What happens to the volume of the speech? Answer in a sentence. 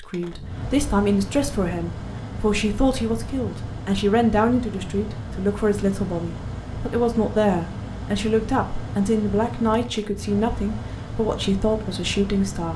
The volume of the speech stays about the same.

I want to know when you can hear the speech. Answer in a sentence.
The speech can be heard from 0.0 to 12.7 s.